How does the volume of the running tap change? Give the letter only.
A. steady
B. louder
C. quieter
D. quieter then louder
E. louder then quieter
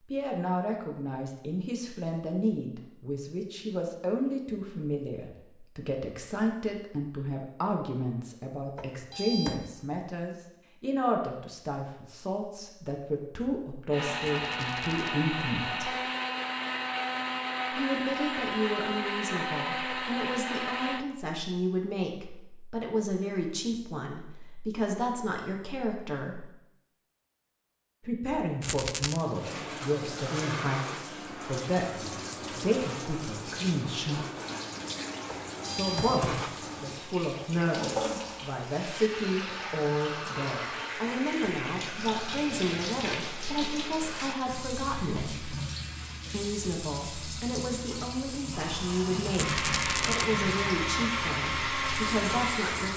A.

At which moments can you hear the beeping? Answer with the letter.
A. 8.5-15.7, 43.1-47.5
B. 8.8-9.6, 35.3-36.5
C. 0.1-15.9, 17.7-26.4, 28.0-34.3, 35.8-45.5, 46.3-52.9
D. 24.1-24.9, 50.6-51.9
B.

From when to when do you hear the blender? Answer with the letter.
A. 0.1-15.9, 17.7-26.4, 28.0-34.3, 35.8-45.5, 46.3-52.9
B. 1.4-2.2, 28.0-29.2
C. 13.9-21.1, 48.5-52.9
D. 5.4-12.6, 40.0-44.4
C.